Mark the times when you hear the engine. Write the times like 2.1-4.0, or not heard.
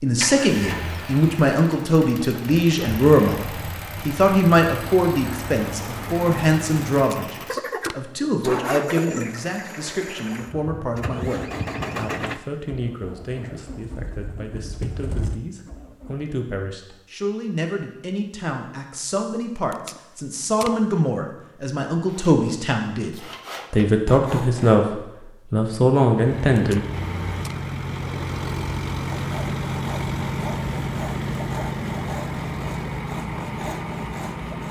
0.1-16.2, 26.1-34.6.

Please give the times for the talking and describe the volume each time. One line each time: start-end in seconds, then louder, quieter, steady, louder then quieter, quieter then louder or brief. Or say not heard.
0.0-26.8 quieter then louder.